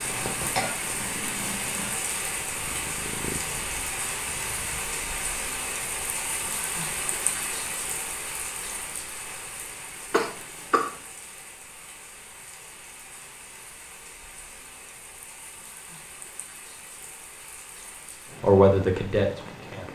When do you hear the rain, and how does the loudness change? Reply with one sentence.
You can hear the rain from 0.0 to 19.8 s, getting quieter.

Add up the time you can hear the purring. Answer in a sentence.
The purring can be heard for 5 seconds in total.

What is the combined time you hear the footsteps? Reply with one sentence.
The footsteps can't be heard in this clip.